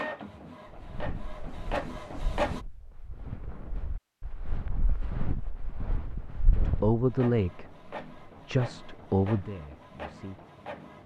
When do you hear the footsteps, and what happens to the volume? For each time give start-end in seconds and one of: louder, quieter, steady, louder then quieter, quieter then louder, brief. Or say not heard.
0.7-7.0 louder.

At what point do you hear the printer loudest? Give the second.
2 s.